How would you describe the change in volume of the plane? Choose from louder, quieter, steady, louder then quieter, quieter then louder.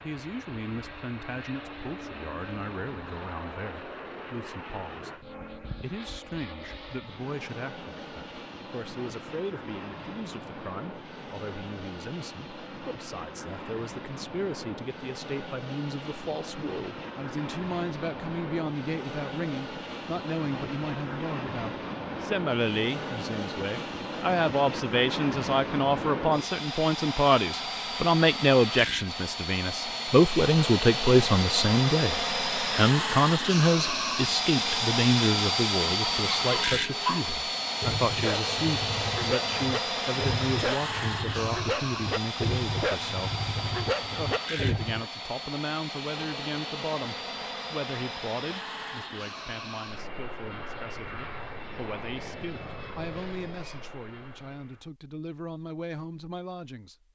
louder then quieter.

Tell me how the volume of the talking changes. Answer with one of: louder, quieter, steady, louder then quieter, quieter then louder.
louder then quieter.